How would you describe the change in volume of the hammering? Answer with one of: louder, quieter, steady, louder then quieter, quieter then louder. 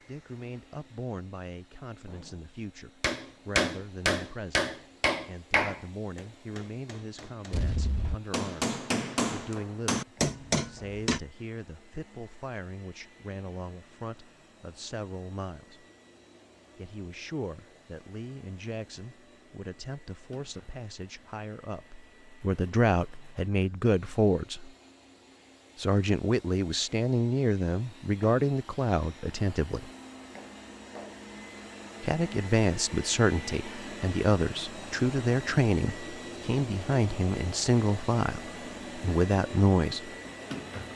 quieter then louder.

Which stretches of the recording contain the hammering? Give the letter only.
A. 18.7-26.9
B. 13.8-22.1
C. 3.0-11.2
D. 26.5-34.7
C.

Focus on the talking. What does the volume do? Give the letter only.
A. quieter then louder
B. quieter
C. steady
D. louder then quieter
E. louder
E.